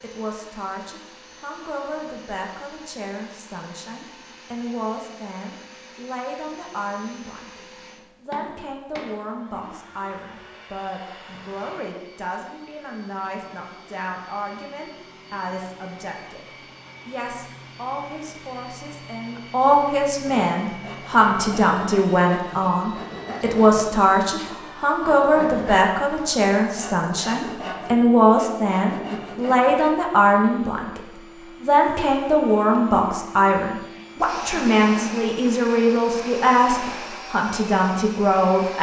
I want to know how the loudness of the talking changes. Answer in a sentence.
The volume of the talking goes up.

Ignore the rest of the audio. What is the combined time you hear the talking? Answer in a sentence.
The talking can be heard for 37 seconds in total.